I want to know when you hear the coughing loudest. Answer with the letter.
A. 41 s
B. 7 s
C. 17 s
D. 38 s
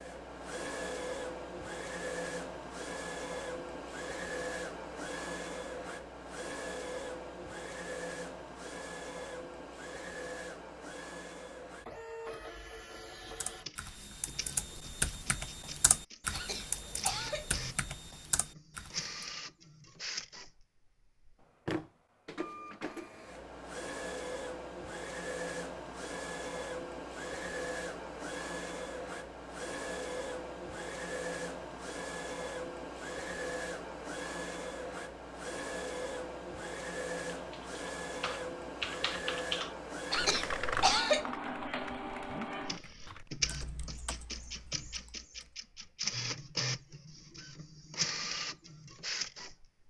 A.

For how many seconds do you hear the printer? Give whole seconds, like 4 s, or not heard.
50 s.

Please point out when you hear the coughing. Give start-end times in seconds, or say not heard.
16.3-17.6, 40.1-41.3.